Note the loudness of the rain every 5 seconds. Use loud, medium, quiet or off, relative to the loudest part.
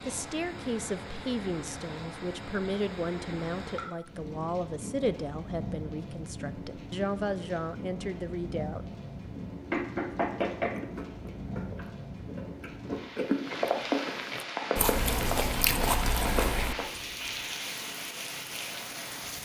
medium, medium, loud, loud.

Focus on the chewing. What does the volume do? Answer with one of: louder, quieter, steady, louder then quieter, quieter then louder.
louder.